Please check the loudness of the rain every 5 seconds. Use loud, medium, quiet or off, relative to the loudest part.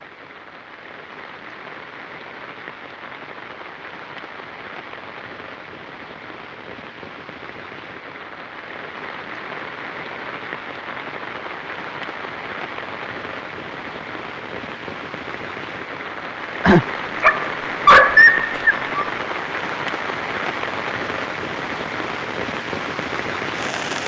medium, medium, medium, loud, loud.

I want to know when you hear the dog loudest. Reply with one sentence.
The volume of the dog peaks at 18 seconds.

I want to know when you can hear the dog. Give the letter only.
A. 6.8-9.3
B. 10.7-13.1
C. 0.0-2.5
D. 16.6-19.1
D.